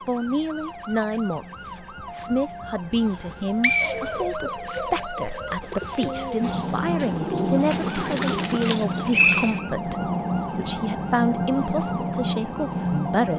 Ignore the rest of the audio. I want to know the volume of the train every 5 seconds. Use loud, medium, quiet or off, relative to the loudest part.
quiet, loud, loud.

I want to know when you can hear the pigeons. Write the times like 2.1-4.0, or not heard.
3.8-9.9.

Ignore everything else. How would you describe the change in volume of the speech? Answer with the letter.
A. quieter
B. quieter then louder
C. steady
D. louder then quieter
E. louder
C.